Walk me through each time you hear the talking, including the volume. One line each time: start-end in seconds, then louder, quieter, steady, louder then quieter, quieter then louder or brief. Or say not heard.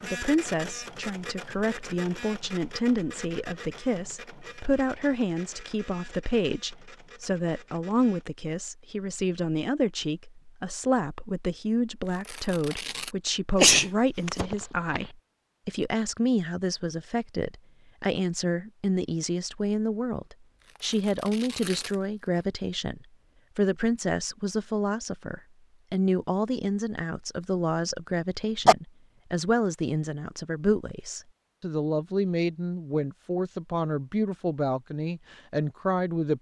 0.0-36.3 steady.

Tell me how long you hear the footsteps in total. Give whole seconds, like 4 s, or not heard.
not heard.